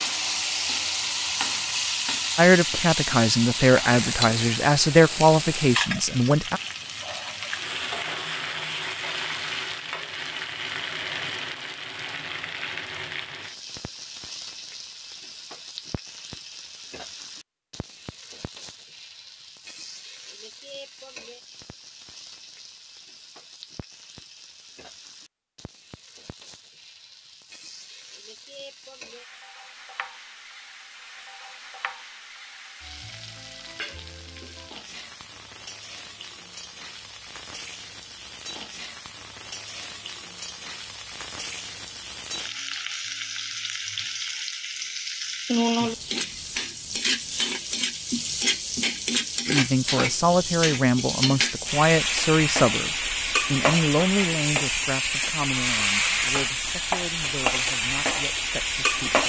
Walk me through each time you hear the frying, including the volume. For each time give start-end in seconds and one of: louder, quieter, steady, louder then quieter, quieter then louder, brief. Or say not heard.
0.0-59.2 quieter then louder.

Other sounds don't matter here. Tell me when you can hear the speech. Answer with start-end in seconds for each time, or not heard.
2.4-6.6, 49.5-59.2.